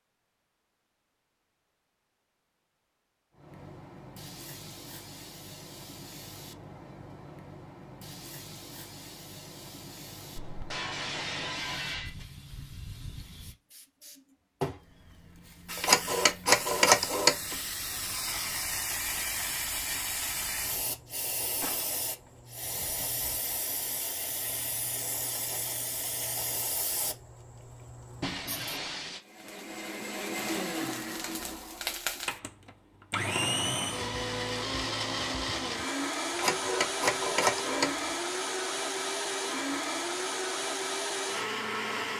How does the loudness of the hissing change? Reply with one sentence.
The volume of the hissing goes up.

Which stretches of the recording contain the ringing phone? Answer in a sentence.
You can hear the ringing phone from 15.8 to 17.6 s and from 36.3 to 38.1 s.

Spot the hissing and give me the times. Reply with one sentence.
You can hear the hissing from 3.3 to 28.8 s.